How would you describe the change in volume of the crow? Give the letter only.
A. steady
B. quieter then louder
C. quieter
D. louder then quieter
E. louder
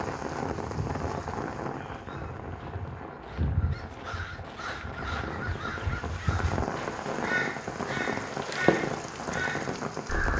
E.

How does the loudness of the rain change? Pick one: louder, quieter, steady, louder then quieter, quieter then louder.
quieter then louder.